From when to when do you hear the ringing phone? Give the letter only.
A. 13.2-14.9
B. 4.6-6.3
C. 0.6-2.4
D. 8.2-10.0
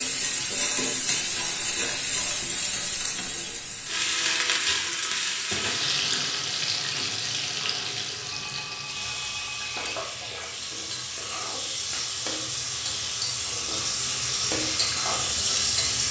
D.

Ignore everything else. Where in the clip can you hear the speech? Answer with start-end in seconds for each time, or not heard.
not heard.